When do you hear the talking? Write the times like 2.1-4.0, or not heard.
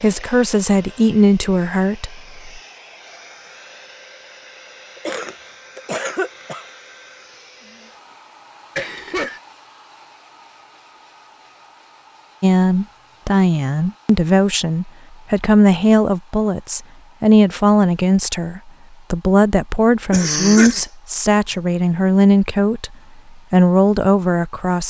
0.0-2.6, 12.4-24.8.